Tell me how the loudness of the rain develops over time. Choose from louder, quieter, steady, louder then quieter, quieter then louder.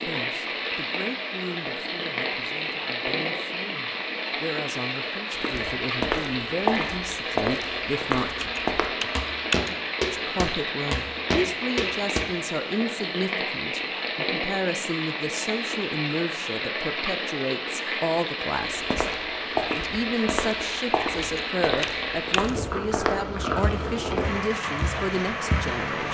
steady.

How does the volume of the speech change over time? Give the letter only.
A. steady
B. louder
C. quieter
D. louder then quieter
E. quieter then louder
B.